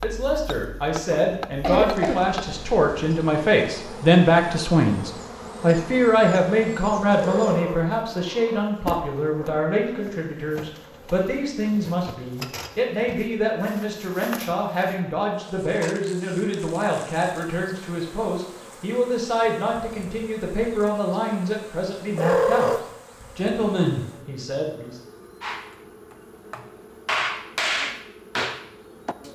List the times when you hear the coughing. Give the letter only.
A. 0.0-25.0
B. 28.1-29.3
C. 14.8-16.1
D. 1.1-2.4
D.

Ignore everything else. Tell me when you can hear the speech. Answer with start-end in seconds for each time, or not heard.
0.0-25.0.